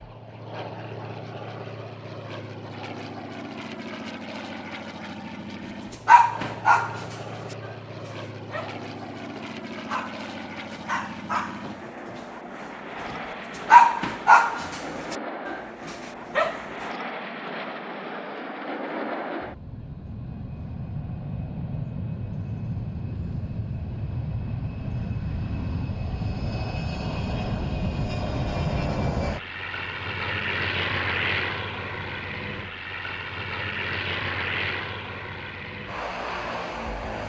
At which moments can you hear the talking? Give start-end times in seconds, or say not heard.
not heard.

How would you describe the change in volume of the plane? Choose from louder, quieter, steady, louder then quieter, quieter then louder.
louder.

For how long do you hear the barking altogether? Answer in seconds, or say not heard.
9 s.